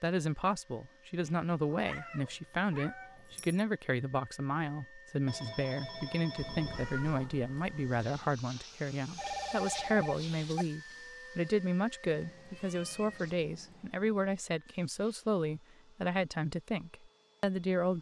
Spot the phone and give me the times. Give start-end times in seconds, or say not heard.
5.2-7.1, 9.2-10.7.